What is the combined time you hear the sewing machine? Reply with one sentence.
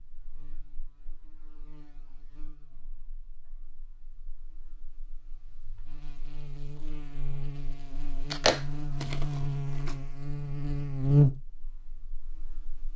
The sewing machine can't be heard in this clip.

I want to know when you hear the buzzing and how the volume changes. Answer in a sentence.
You can hear the buzzing from 0.0 to 12.9 s, getting quieter then louder.